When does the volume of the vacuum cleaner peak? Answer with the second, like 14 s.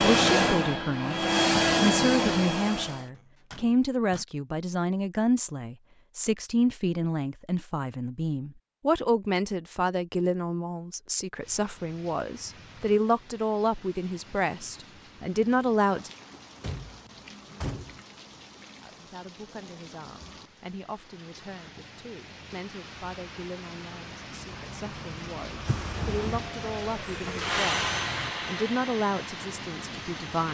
2 s.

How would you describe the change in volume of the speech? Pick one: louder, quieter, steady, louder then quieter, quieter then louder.
quieter then louder.